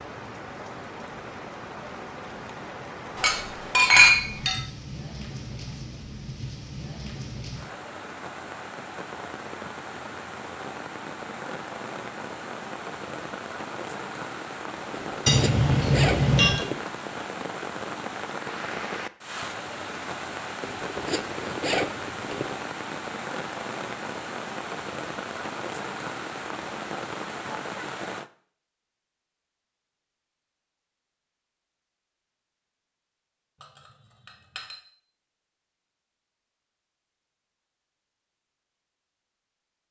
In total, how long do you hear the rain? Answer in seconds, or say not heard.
28 s.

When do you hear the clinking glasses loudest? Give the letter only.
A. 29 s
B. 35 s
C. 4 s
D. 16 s
C.